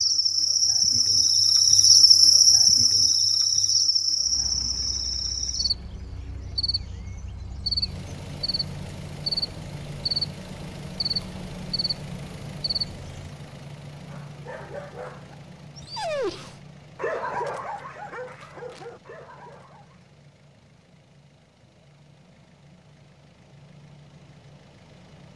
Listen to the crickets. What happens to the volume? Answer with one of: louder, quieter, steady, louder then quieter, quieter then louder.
quieter.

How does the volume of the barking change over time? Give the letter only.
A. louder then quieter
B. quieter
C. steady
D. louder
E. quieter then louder
A.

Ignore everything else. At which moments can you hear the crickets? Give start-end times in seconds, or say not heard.
0.0-13.3.